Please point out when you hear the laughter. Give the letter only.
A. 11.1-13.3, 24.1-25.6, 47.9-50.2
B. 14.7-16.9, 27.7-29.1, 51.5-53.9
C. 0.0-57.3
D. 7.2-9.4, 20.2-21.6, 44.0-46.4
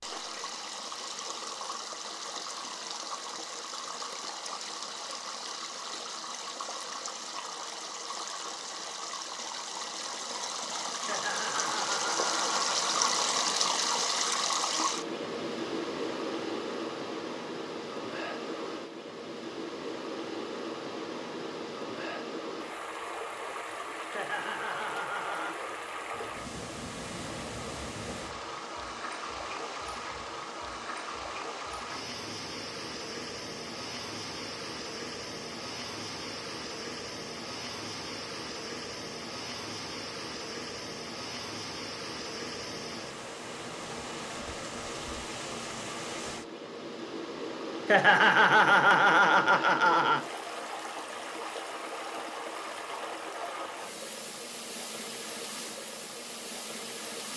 A.